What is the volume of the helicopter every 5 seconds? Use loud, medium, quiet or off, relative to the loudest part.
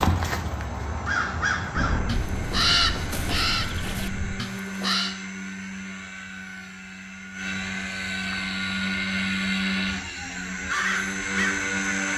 medium, loud, loud.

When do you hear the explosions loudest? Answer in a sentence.
The volume of the explosions peaks at 2 seconds.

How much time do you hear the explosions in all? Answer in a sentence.
The explosions can be heard for 3 seconds in total.